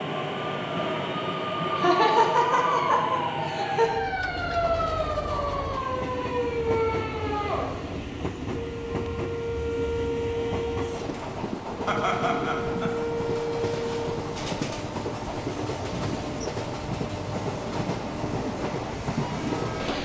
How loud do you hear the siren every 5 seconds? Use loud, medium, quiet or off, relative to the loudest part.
loud, loud, loud, off.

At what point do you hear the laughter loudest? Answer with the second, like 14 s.
2 s.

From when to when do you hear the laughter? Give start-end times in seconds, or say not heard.
1.8-3.9, 11.8-12.9.